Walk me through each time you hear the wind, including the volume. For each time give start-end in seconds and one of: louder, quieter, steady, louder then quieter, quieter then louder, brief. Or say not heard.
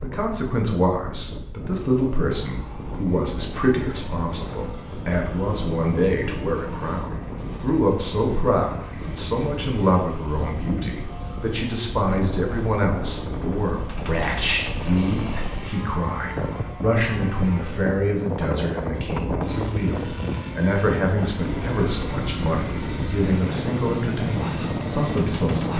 0.0-25.7 louder.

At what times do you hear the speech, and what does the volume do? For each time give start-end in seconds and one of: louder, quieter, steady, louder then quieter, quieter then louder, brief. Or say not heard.
0.0-25.7 steady.